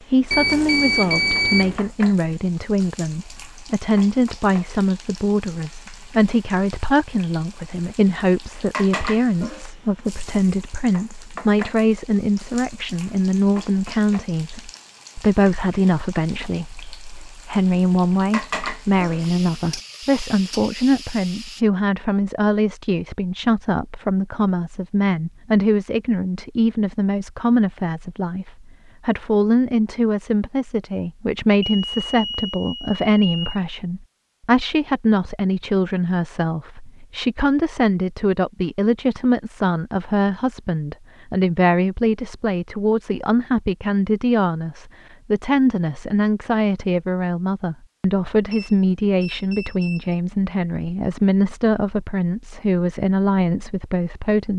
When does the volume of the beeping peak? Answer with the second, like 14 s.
1 s.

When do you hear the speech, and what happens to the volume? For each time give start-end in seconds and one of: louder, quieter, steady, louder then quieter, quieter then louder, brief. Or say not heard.
0.1-54.5 steady.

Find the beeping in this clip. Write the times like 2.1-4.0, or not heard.
0.3-1.9, 31.6-33.6, 48.5-50.2.